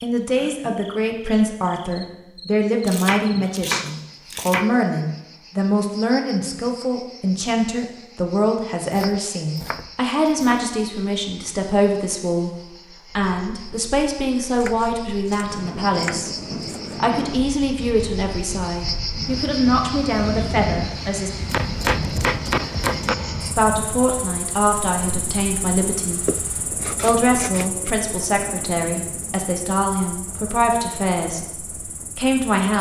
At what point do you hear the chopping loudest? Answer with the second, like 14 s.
22 s.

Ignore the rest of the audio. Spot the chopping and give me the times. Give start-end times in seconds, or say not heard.
2.9-4.8, 8.9-10.6, 14.6-16.9, 21.4-23.1, 26.2-27.9.